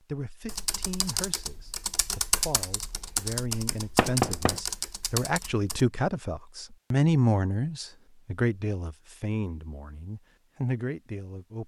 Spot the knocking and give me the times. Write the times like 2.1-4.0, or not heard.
4.0-4.6.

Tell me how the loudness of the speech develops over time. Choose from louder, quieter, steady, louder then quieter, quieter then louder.
louder then quieter.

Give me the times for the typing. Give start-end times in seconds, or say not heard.
0.5-5.8.